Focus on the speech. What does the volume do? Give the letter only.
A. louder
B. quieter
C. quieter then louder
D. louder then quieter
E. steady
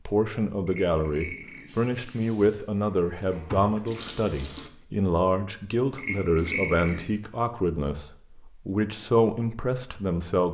E.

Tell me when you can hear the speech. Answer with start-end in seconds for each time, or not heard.
0.1-10.4.